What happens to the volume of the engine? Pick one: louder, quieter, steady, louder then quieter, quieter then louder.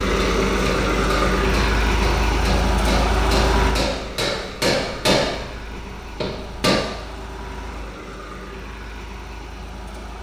quieter.